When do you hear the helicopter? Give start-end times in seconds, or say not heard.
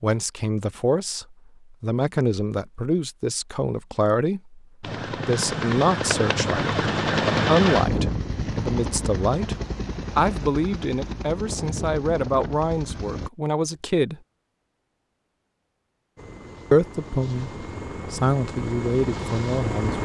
4.8-13.3, 16.1-19.9.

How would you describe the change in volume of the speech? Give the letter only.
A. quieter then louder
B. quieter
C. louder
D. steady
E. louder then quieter
D.